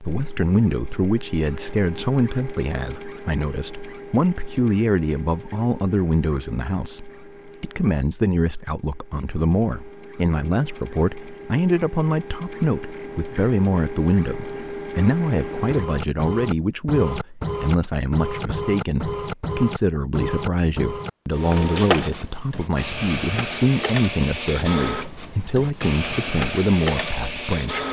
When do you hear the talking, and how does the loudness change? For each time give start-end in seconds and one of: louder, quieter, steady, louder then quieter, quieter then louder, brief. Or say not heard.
0.0-27.8 steady.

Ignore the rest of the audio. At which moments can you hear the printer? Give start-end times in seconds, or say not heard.
0.0-27.8.